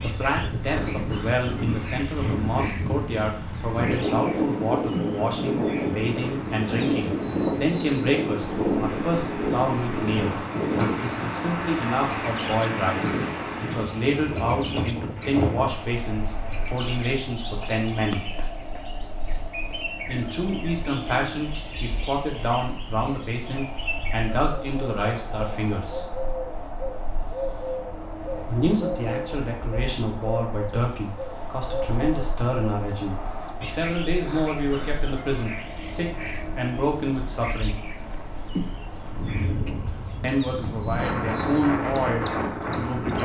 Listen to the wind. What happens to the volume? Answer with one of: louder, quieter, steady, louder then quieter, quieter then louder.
quieter then louder.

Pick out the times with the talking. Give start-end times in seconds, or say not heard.
0.0-18.2, 20.1-26.1, 28.4-37.8, 40.2-43.2.